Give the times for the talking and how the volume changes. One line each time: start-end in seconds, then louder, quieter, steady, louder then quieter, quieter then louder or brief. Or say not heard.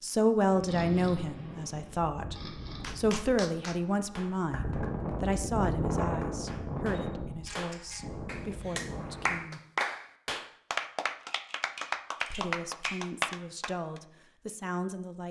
0.0-2.4 brief
3.0-9.6 quieter
12.3-15.2 brief.